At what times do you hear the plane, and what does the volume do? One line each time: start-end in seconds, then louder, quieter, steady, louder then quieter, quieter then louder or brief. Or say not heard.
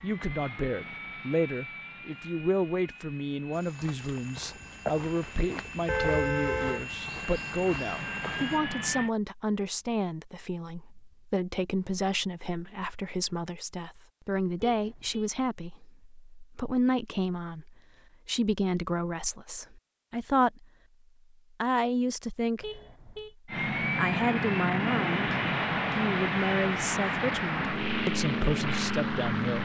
0.0-9.1 quieter then louder
23.4-29.6 steady.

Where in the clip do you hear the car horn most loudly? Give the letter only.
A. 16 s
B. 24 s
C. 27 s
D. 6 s
D.